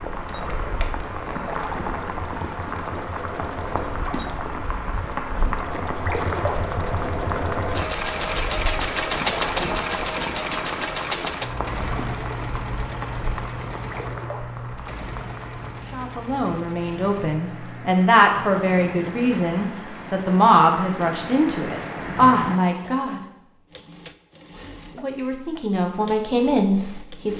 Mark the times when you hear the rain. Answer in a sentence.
The rain can be heard from 0.0 to 22.6 s.